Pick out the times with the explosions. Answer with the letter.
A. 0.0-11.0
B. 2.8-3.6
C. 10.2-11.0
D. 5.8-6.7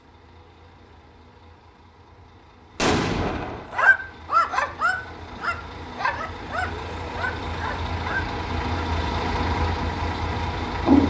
B.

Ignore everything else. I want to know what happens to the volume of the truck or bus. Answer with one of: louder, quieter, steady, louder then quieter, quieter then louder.
louder.